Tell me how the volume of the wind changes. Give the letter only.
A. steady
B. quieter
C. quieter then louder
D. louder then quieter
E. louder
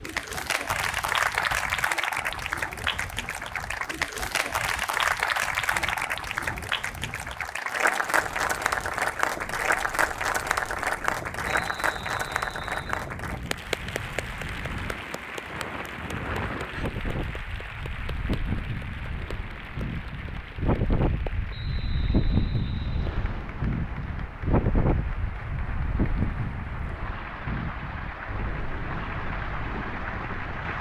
E.